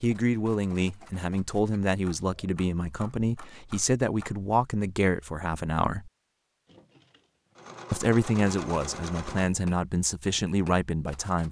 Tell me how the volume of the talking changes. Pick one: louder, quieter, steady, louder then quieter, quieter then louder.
steady.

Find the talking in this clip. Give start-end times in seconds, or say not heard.
0.0-6.1, 7.9-11.4.